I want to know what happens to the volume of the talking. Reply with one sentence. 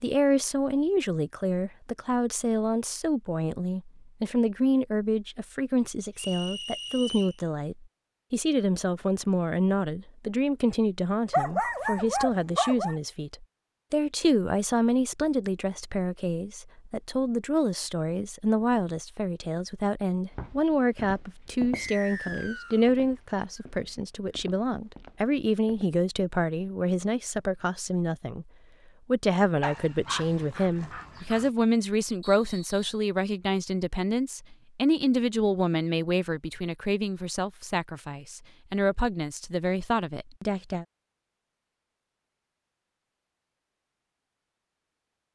The volume of the talking stays about the same.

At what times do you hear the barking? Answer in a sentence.
The barking can be heard from 11.3 to 12.9 s and from 29.6 to 31.5 s.